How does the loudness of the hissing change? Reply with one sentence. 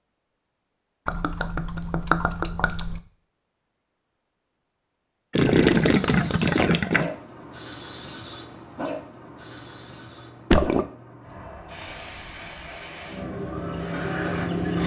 The volume of the hissing goes down, then up.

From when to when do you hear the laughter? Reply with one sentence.
You can't hear the laughter here.